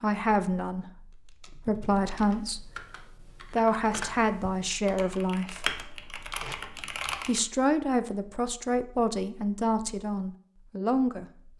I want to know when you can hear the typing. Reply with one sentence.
You can hear the typing from 1.5 to 7.4 s.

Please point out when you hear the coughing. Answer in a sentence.
You can't hear the coughing here.